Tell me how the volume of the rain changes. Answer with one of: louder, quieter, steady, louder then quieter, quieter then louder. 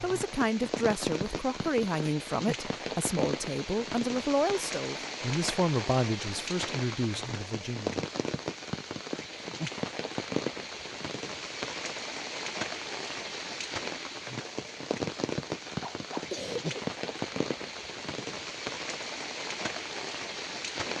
steady.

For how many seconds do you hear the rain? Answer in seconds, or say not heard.
21 s.